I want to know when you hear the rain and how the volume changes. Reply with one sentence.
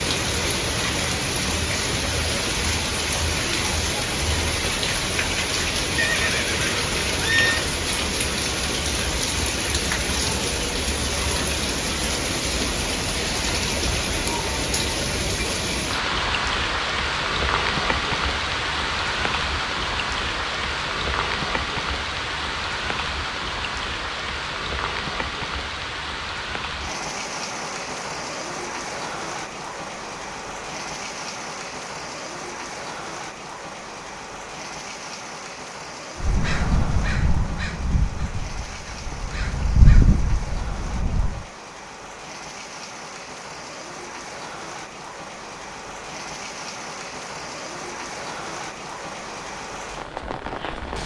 The rain can be heard from 0.0 to 51.0 s, getting quieter.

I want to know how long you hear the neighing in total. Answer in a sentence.
The neighing can be heard for 2 seconds in total.